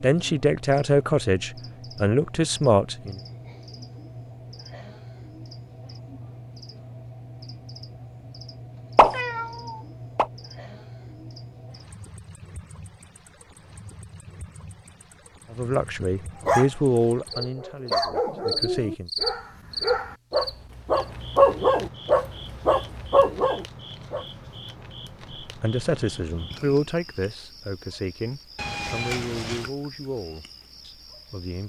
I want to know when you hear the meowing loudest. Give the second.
9 s.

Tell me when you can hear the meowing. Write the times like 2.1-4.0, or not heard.
8.9-10.2, 28.6-29.7.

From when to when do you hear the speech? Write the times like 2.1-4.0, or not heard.
0.0-3.2, 15.5-19.1, 25.4-31.6.